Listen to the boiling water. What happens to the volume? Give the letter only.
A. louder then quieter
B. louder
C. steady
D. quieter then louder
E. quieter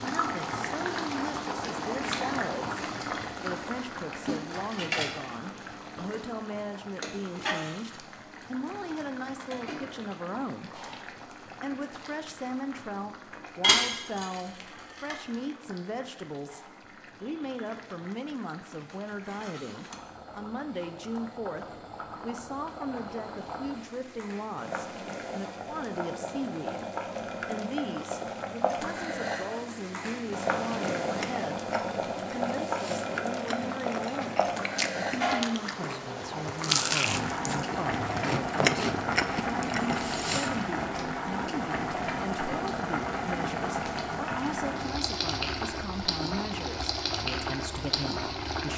D.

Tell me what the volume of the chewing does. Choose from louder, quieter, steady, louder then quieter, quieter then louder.
louder.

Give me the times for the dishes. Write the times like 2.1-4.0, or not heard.
13.6-15.2.